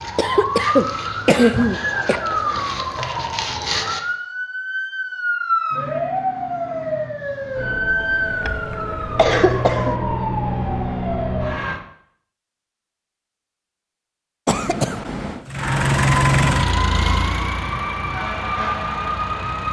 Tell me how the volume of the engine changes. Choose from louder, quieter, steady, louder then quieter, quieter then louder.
quieter.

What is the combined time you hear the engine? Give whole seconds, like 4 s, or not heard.
4 s.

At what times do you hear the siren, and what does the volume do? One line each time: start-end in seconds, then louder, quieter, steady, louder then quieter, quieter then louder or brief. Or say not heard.
0.0-11.8 steady
15.6-19.6 steady.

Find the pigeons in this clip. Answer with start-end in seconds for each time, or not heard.
not heard.